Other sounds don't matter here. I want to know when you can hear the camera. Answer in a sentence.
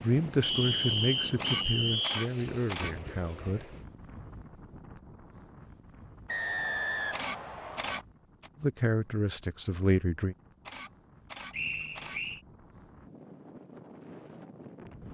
The camera can be heard from 1.4 to 3.0 s, from 7.1 to 8.5 s and from 10.7 to 12.2 s.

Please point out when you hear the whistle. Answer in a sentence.
The whistle can be heard from 0.4 to 2.3 s, from 6.2 to 8.1 s and from 11.5 to 12.4 s.